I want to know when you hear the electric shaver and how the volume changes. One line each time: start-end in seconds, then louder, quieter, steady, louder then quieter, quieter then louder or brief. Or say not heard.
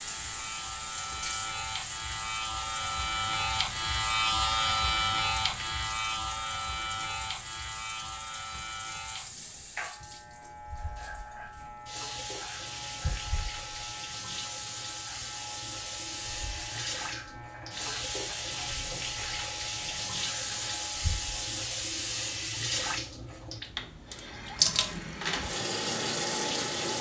0.0-21.6 quieter.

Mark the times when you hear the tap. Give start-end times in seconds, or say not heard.
0.0-26.9.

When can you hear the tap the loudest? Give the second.
25 s.